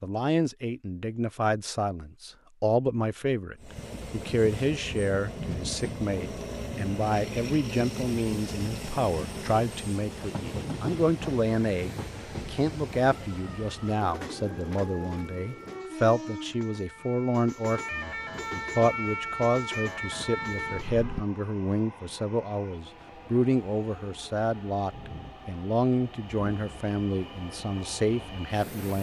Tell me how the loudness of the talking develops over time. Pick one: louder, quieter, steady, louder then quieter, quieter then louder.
steady.